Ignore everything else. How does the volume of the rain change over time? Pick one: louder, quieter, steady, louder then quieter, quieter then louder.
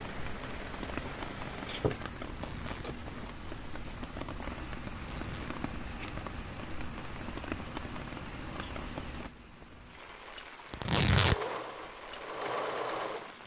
quieter.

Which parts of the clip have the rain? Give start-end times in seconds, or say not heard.
0.0-13.4.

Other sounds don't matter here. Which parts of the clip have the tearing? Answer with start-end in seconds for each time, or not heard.
2.2-2.9, 4.9-5.5, 10.7-11.3.